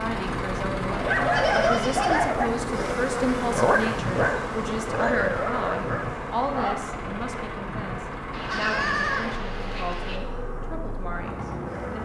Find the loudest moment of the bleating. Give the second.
9 s.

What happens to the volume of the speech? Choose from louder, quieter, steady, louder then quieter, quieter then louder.
quieter.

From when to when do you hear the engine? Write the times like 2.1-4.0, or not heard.
0.0-11.9.